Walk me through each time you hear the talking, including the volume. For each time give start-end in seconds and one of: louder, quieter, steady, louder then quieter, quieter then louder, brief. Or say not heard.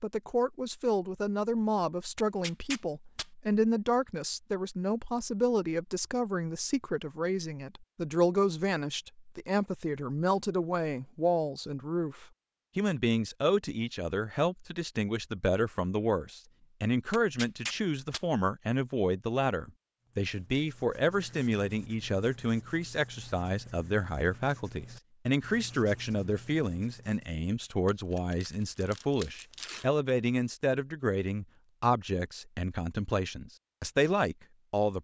0.0-35.0 steady.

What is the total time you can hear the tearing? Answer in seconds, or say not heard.
4 s.